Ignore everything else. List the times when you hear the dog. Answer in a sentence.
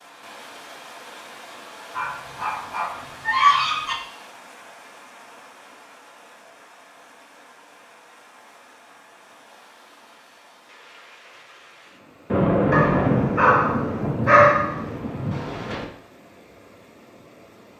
The dog can be heard from 1.9 to 4.0 s and from 12.7 to 14.8 s.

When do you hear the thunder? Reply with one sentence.
You can hear the thunder from 12.3 to 15.8 s.